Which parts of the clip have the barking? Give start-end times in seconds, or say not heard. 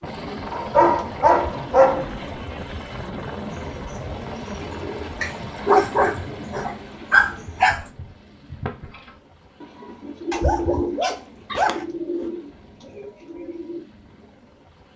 0.5-2.1, 5.2-7.8, 10.3-11.8.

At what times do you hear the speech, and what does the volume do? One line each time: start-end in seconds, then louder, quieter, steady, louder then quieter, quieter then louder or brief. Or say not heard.
not heard.